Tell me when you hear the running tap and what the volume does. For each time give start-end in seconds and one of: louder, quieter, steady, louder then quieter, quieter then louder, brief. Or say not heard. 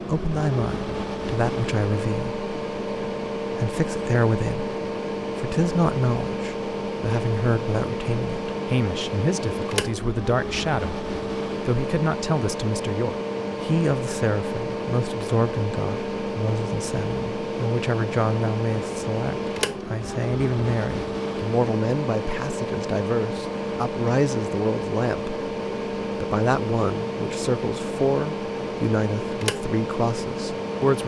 not heard.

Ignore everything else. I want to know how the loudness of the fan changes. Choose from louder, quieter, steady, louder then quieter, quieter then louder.
steady.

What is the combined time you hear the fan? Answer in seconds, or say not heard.
31 s.